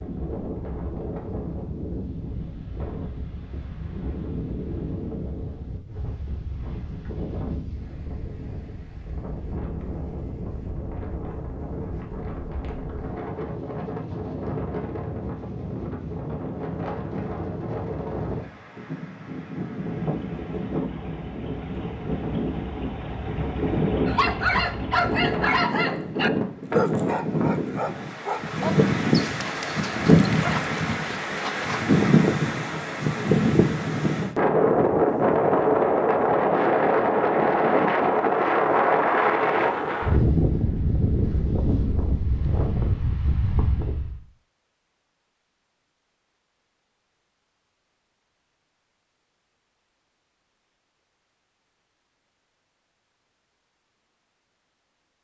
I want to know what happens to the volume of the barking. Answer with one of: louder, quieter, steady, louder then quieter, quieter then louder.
quieter.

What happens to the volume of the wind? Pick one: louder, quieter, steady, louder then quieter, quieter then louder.
louder.